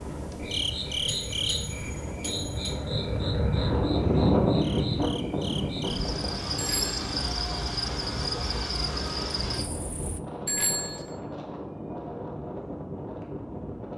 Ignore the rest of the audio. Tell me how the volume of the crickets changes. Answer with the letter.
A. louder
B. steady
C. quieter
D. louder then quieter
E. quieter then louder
E.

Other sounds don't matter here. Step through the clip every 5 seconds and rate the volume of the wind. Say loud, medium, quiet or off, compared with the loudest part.
loud, medium, medium.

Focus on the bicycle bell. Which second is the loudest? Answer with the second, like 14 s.
11 s.